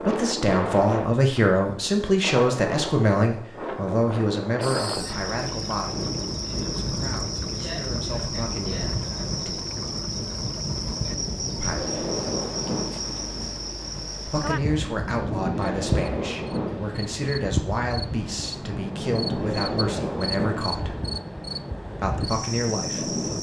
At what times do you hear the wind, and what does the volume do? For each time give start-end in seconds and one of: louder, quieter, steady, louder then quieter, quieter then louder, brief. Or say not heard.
0.0-23.3 steady.